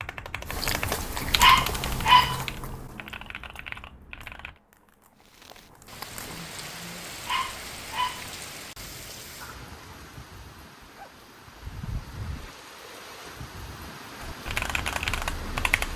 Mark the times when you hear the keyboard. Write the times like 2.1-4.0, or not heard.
0.0-4.6, 14.2-15.9.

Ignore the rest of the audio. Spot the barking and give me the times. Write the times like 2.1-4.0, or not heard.
1.4-2.4, 7.2-8.3, 10.8-12.6.